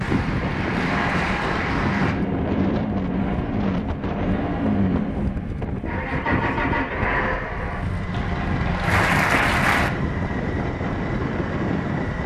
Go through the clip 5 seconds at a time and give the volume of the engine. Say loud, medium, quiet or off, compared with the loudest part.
loud, loud, medium.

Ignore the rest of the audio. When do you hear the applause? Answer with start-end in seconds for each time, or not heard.
0.0-2.1, 8.1-9.9.